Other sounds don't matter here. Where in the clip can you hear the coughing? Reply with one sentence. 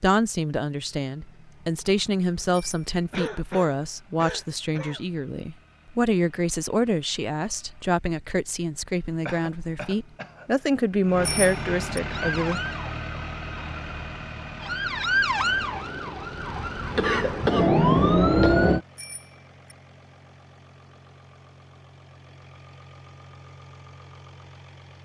You can hear the coughing from 3.1 to 5.0 s, from 9.2 to 10.5 s and from 16.9 to 18.6 s.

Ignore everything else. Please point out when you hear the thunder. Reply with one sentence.
The thunder can't be heard in this clip.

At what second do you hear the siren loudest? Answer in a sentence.
The volume of the siren peaks at 18 seconds.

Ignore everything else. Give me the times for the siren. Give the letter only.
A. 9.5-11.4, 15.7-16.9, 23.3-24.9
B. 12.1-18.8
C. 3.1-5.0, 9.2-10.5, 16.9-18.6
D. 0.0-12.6
B.